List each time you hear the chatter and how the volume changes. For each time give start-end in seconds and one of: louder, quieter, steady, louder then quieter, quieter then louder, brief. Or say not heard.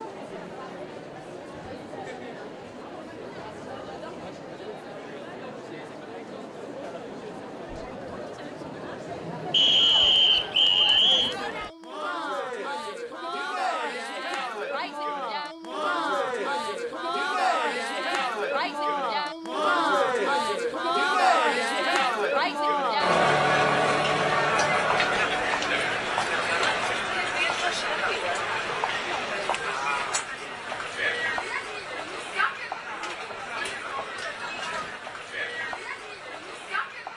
0.0-37.1 louder then quieter.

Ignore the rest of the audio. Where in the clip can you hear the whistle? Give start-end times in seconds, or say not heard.
9.5-11.3.